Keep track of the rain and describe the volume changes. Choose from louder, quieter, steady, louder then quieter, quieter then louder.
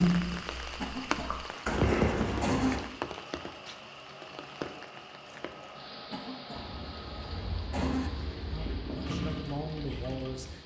quieter.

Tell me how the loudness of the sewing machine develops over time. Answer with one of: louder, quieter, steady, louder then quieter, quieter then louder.
louder.